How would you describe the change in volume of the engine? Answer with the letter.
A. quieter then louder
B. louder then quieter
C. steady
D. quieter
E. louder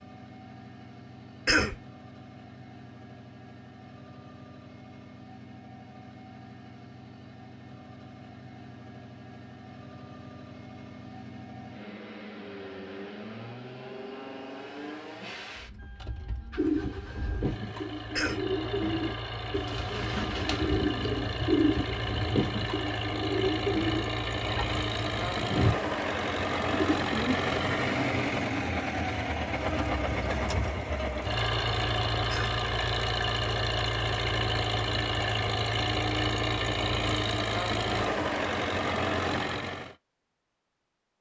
E.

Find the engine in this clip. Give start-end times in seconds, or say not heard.
0.0-40.0.